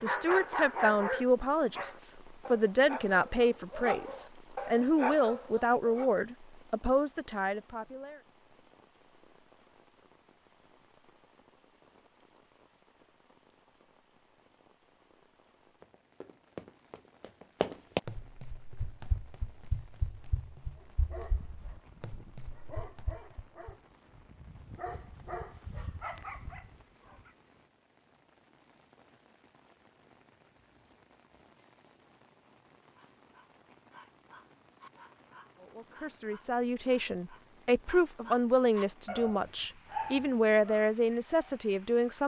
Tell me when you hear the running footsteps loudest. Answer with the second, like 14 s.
18 s.